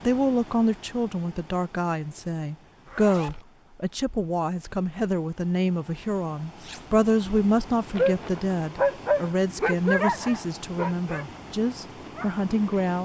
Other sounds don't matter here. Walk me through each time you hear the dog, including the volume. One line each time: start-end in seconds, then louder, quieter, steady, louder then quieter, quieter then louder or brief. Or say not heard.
8.0-13.0 quieter.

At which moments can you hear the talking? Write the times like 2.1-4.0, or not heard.
0.0-13.0.